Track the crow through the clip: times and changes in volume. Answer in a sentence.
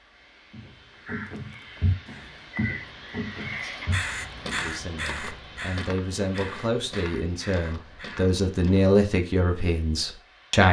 You can hear the crow from 0.9 to 8.3 s, getting louder then quieter.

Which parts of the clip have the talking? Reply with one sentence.
The talking can be heard from 4.5 to 10.6 s.